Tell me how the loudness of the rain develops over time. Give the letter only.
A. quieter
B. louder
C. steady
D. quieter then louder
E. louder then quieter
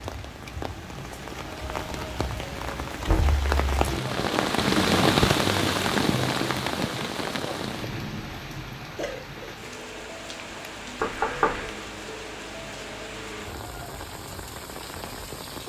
E.